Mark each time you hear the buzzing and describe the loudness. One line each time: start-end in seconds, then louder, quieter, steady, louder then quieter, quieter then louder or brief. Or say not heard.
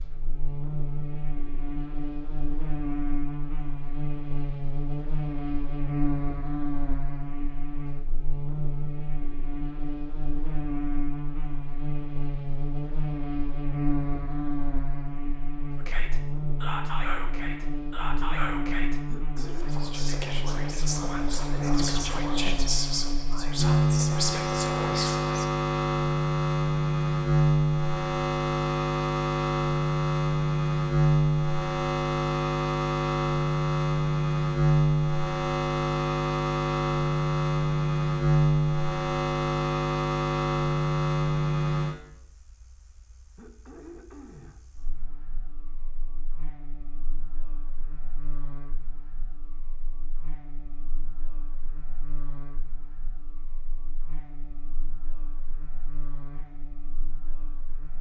0.0-57.9 louder then quieter.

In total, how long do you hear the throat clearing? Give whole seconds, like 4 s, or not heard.
2 s.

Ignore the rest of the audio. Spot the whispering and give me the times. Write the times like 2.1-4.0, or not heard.
15.8-25.4.